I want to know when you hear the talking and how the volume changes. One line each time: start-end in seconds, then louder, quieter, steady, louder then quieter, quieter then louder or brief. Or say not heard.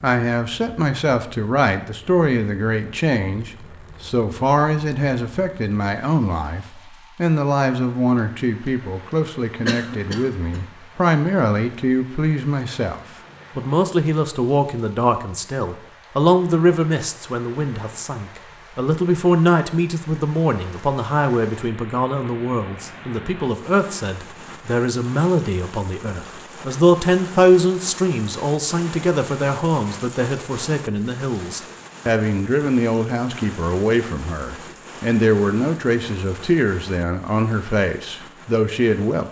0.0-39.2 steady.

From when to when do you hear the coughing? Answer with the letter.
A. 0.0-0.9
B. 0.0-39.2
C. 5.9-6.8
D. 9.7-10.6
D.